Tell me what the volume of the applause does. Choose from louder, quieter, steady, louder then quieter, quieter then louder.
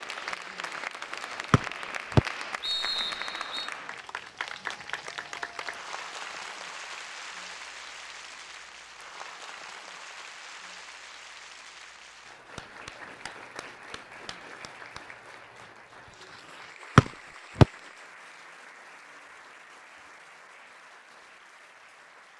quieter.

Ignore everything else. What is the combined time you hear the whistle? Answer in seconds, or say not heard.
3 s.